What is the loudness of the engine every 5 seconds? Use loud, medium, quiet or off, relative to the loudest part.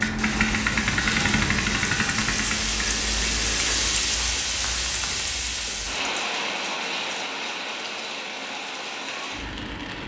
loud, off.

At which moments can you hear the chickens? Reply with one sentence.
The chickens can't be heard in this clip.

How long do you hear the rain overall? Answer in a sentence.
You can hear the rain for 10 seconds altogether.